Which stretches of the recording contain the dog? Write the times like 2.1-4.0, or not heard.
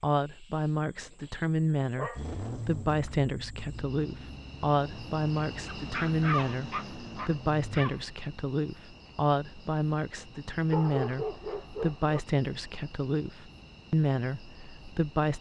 0.8-2.2, 5.7-8.0, 10.7-12.2.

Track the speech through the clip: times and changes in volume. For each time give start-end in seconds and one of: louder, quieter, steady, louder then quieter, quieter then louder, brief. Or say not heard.
0.0-15.3 steady.